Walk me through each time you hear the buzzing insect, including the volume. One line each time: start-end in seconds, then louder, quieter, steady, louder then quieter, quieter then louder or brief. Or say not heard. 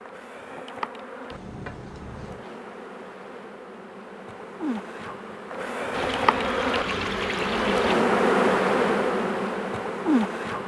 0.0-10.6 louder.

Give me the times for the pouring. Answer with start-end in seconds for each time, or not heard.
1.3-2.5, 5.9-8.0.